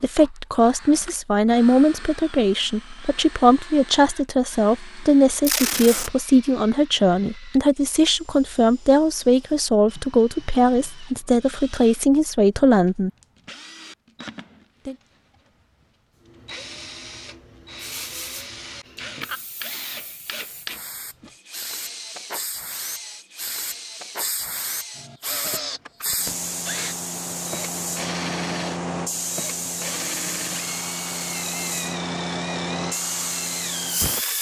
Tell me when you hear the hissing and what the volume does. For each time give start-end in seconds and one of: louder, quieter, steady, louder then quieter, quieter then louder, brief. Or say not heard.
16.2-34.3 louder.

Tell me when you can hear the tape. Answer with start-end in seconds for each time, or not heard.
5.4-6.1.